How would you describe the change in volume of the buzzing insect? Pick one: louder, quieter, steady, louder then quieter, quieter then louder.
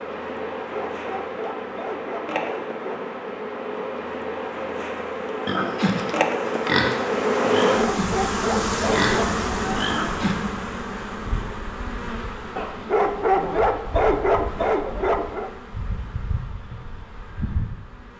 louder then quieter.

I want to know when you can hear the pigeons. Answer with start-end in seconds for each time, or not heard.
not heard.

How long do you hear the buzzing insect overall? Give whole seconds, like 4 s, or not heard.
18 s.